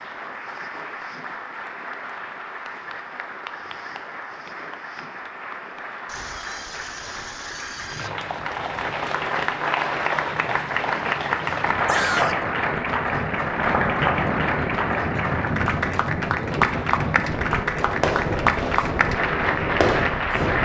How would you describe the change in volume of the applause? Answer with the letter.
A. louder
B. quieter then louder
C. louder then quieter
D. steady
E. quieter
A.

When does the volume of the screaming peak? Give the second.
12 s.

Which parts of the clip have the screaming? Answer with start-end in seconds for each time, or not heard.
6.0-8.1, 11.8-12.4.